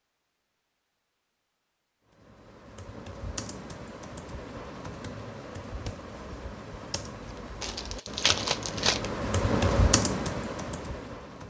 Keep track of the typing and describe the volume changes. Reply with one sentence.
The loudness of the typing goes up.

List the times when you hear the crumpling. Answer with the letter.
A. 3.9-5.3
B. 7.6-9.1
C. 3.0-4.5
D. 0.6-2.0
B.